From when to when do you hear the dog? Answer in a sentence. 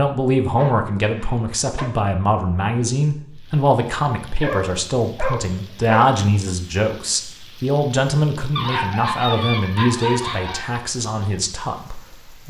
The dog can be heard from 0.6 to 1.9 s, from 4.4 to 6.5 s and from 8.6 to 10.7 s.